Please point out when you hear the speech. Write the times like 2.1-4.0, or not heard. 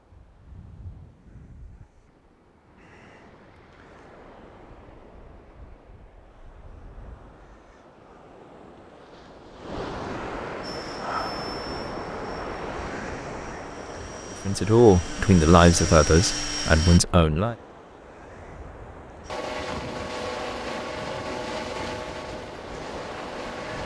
14.3-17.6.